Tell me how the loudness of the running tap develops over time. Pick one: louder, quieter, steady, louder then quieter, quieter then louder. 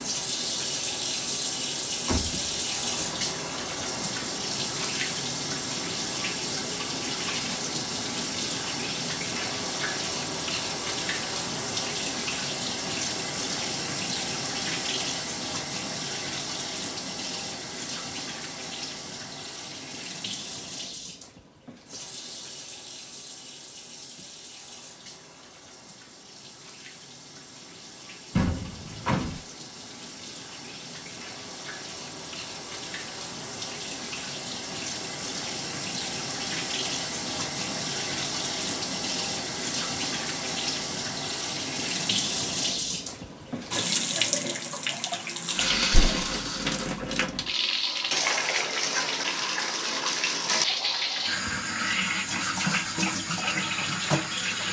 quieter then louder.